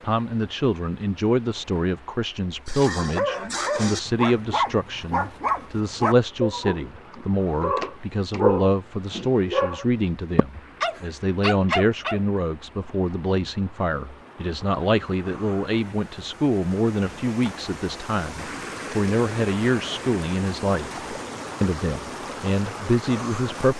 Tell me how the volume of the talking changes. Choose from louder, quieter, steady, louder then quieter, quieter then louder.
steady.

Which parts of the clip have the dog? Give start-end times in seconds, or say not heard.
2.6-12.2.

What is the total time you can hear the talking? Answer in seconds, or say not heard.
24 s.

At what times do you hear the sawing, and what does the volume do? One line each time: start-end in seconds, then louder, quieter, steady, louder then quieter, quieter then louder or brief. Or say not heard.
not heard.